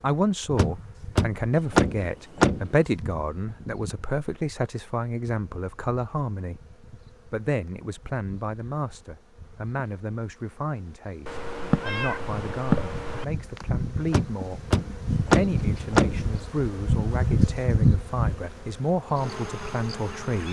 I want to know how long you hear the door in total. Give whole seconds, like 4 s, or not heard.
4 s.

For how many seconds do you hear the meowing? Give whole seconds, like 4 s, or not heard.
2 s.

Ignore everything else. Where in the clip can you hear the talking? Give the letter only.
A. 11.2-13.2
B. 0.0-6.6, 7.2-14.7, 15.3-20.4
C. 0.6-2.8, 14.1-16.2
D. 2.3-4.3
B.